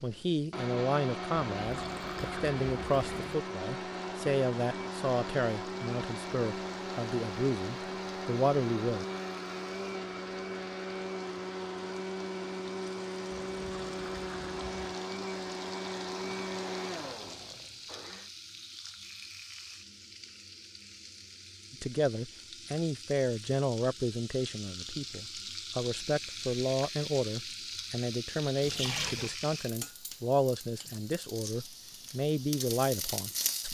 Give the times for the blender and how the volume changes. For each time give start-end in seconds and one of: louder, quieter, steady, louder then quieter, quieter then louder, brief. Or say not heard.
0.0-18.3 steady.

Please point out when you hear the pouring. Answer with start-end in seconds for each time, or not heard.
1.6-3.4, 13.3-14.9, 28.6-29.4.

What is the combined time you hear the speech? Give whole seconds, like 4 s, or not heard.
21 s.